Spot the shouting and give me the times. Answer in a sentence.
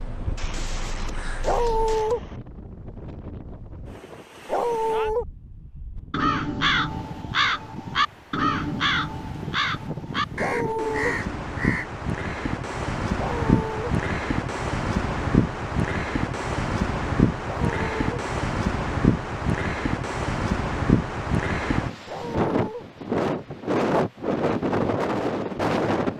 You can't hear the shouting here.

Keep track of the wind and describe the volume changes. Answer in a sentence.
The volume of the wind goes up.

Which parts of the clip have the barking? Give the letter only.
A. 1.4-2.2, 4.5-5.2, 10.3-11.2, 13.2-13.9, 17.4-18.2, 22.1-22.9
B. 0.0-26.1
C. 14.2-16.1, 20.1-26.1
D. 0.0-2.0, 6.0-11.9
A.